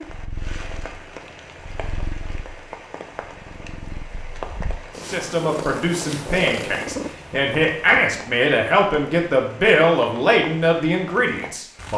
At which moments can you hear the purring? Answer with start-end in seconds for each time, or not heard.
0.0-8.2.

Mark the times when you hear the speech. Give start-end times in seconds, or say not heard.
5.0-11.9.